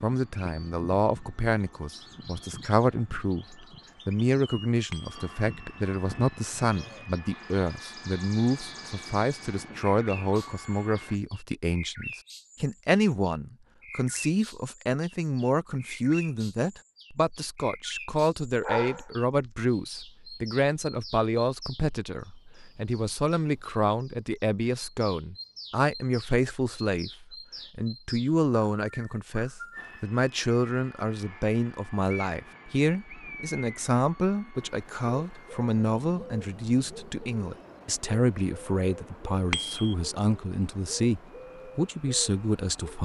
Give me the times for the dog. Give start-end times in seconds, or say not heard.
18.6-19.5.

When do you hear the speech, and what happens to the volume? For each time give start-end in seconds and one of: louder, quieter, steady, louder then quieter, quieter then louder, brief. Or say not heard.
0.0-42.9 steady.